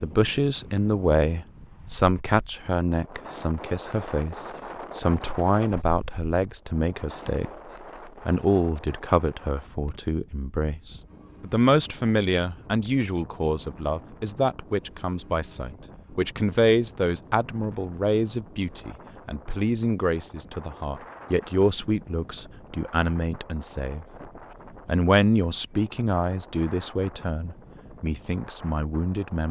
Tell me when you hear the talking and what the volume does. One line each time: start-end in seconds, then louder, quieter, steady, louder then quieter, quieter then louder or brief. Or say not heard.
0.0-24.1 steady
24.9-29.4 quieter.